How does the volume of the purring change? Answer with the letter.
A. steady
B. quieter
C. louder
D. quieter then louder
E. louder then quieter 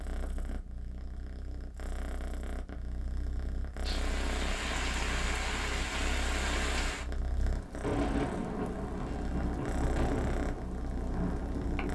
C.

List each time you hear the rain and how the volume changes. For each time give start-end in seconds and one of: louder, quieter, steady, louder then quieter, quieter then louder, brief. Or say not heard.
3.9-11.9 steady.